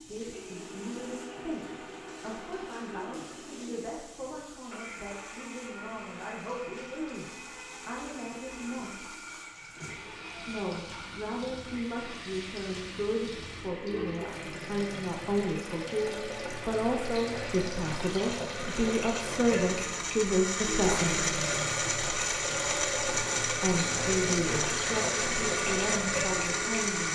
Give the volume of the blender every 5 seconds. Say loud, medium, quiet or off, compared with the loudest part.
quiet, quiet, quiet, medium, loud, loud.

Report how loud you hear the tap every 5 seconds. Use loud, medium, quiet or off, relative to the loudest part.
quiet, quiet, medium, loud, loud, loud.